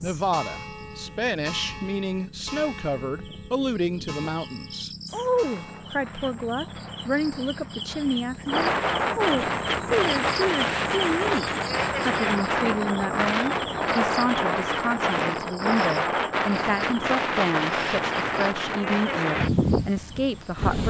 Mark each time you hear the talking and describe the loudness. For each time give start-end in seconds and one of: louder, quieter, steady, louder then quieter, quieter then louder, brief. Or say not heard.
0.0-20.8 steady.